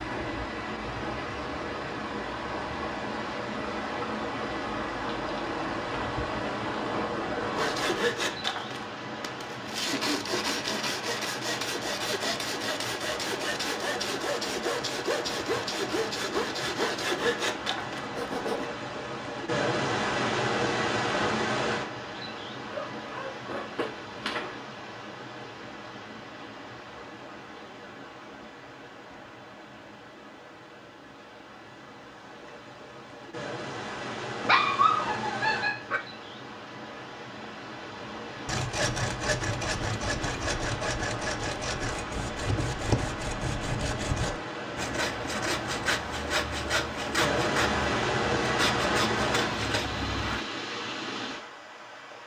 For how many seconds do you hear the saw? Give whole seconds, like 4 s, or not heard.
23 s.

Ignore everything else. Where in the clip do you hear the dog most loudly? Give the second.
35 s.